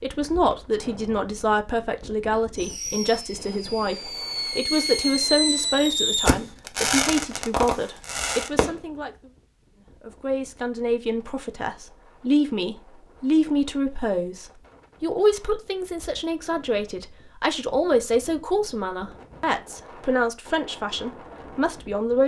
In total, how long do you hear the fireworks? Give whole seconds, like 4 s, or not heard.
6 s.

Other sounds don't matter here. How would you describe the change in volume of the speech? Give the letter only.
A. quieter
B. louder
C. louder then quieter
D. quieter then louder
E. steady
E.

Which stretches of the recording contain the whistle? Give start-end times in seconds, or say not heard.
not heard.